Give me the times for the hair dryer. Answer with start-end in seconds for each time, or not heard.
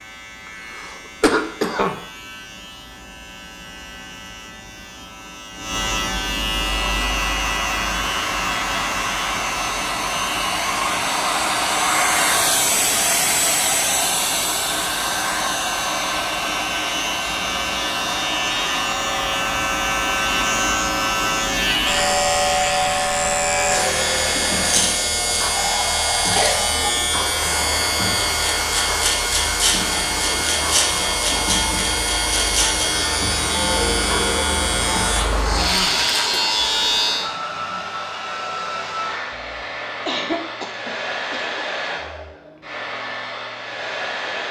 6.6-44.4.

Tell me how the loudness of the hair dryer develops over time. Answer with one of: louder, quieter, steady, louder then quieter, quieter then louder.
quieter.